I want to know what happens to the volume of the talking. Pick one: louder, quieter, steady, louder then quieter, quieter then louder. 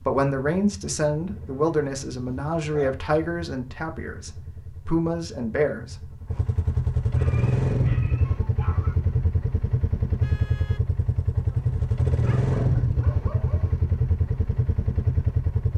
quieter then louder.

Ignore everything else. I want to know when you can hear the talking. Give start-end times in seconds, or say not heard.
0.1-6.1.